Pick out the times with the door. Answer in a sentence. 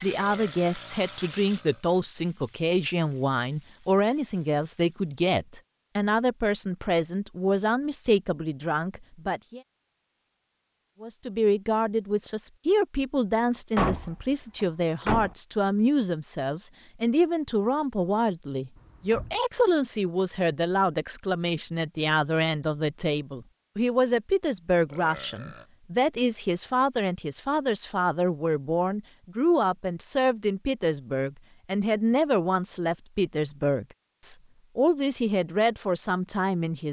You can hear the door from 13.8 to 15.3 s and from 18.8 to 19.4 s.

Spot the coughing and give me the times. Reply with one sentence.
You can't hear the coughing here.